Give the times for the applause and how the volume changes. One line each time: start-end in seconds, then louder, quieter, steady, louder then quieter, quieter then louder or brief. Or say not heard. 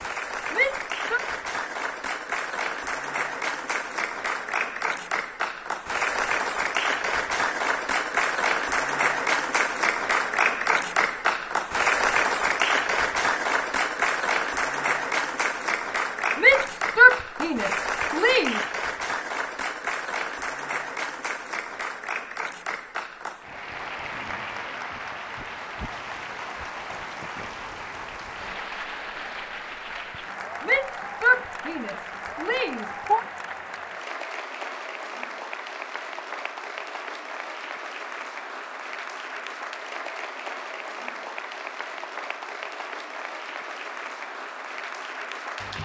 0.0-45.8 quieter.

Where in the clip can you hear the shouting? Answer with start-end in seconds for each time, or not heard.
0.5-1.2, 16.4-18.6, 30.6-33.2.